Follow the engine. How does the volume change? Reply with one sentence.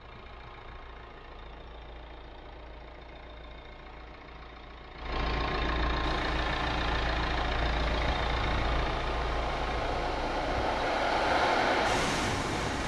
The loudness of the engine goes up, then down.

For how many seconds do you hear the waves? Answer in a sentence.
The waves can be heard for 7 seconds in total.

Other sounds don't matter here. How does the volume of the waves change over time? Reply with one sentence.
The loudness of the waves goes up.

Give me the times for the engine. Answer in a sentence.
The engine can be heard from 0.0 to 12.8 s.